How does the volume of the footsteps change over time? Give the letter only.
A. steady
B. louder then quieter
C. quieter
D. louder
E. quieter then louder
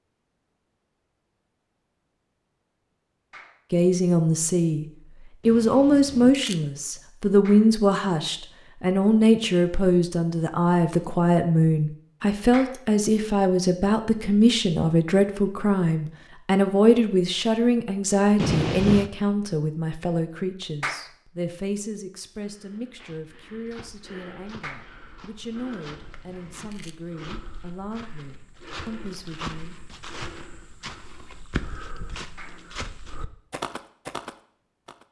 D.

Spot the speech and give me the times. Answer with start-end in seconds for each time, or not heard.
3.7-4.8, 5.5-29.8.